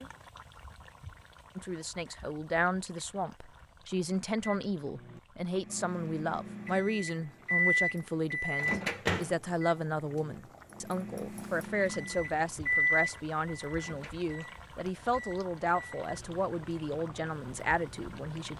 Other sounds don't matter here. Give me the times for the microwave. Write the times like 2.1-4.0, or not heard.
4.4-18.5.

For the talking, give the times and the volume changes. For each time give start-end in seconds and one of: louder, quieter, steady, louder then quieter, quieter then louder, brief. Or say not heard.
1.6-18.5 steady.